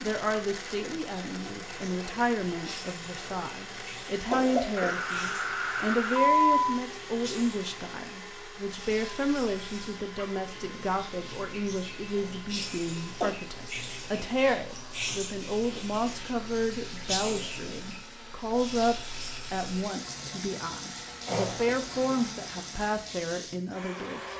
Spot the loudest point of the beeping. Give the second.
6 s.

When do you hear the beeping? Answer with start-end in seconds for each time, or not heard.
4.8-6.7.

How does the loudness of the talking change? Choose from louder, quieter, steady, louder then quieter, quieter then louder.
steady.